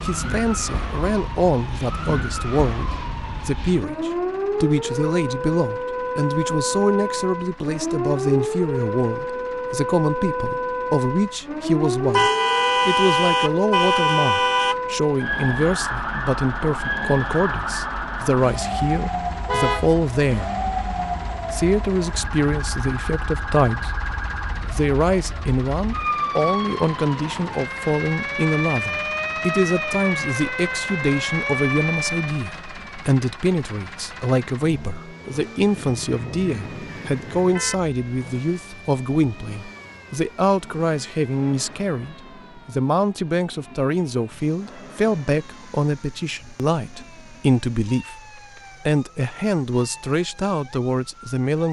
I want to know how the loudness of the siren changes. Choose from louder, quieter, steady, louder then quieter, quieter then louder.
quieter.